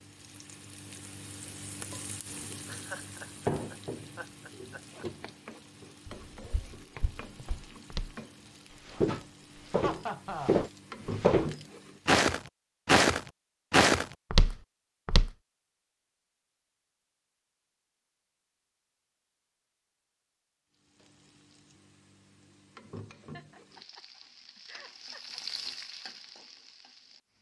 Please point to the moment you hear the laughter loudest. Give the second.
10 s.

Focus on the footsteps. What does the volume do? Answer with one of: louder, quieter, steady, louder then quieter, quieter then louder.
louder.